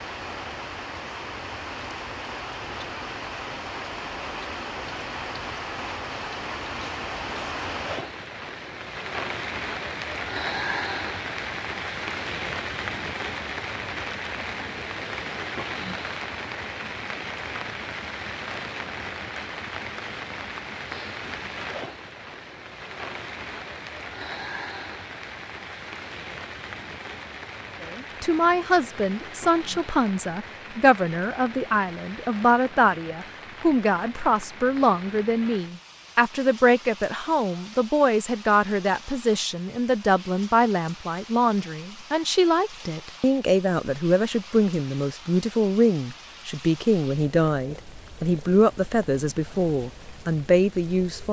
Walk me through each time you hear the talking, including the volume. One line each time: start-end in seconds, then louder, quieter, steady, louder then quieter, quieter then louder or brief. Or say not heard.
27.8-51.2 steady.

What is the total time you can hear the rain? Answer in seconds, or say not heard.
51 s.